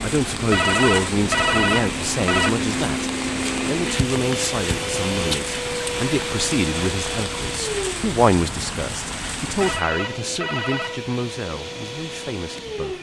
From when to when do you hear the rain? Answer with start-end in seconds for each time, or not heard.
0.0-9.8.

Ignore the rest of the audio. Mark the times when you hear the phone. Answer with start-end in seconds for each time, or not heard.
0.5-2.5, 9.6-11.0.